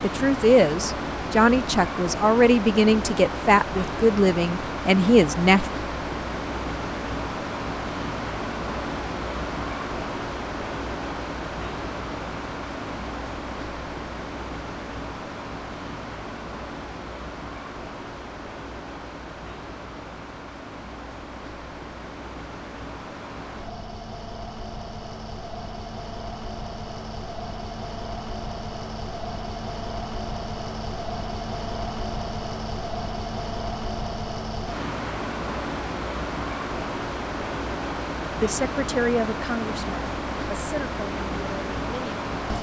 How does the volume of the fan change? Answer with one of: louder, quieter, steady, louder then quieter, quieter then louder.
quieter then louder.